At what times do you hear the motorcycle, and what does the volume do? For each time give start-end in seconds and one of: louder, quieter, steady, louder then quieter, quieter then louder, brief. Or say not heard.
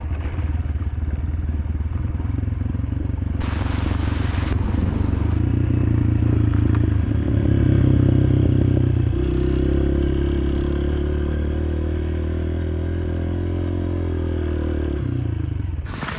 0.0-16.1 louder then quieter.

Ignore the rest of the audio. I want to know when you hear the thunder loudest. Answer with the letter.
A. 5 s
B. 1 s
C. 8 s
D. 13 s
A.